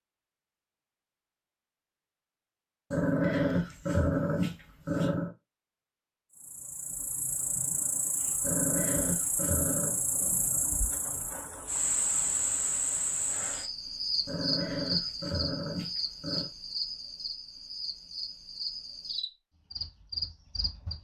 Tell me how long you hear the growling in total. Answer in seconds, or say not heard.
6 s.